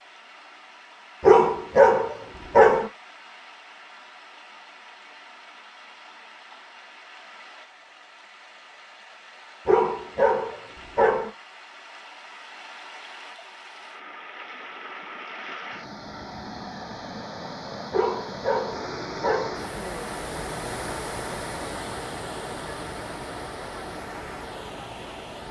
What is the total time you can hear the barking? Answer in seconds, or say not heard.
5 s.